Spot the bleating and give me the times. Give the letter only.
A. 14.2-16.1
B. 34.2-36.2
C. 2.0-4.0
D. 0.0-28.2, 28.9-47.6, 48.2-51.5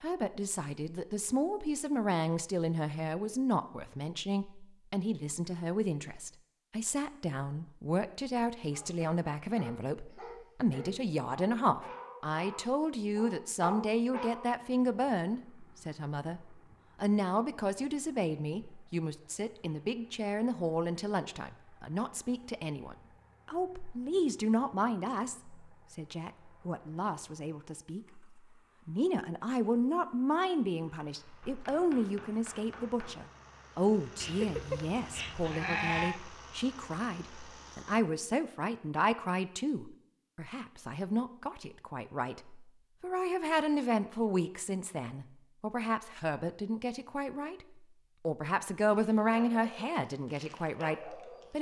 B.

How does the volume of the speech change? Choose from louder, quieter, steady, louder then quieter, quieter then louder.
steady.